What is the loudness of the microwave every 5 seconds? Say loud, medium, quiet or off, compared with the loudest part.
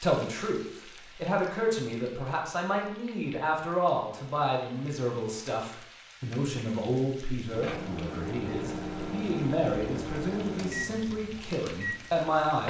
off, loud, loud.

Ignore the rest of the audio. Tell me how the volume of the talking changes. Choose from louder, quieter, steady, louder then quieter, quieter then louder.
steady.